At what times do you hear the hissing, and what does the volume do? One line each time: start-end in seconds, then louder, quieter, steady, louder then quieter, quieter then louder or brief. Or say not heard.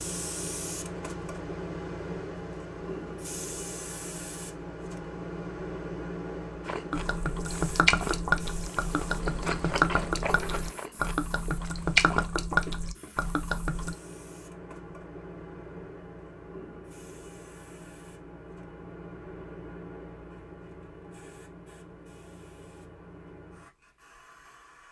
0.0-24.8 quieter.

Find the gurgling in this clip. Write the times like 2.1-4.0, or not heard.
6.9-13.9.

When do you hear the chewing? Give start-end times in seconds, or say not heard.
6.6-12.2.